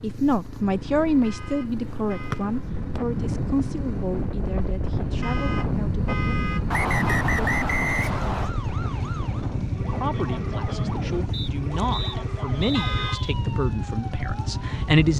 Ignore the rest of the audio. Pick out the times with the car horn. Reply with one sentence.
The car horn can be heard from 1.2 to 2.5 s, from 5.2 to 7.2 s and from 12.8 to 13.3 s.